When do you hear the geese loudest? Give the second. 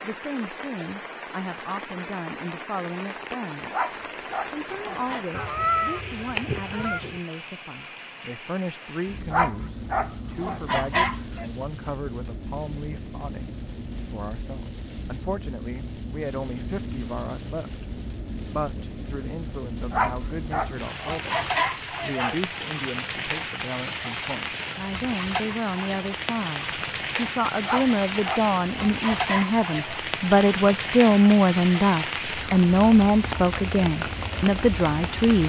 6 s.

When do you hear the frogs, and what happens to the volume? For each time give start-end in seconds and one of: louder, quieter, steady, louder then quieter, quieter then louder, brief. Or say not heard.
not heard.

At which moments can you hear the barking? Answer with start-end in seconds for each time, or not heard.
3.7-5.2, 9.3-11.4, 19.9-22.4, 27.6-30.0.